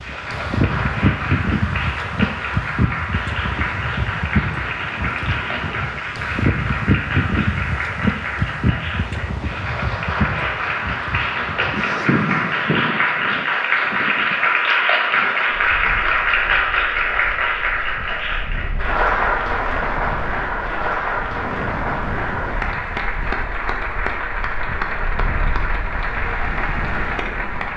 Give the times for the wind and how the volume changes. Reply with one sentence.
You can hear the wind from 0.0 to 27.7 s, getting quieter.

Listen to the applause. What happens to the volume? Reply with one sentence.
The loudness of the applause goes up, then down.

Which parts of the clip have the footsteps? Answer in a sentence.
You can't hear the footsteps here.